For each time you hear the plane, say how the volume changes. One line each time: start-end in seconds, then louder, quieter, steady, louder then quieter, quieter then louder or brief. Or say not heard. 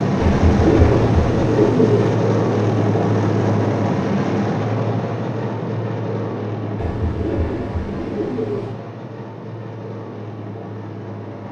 0.0-11.4 quieter.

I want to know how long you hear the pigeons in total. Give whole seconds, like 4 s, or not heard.
4 s.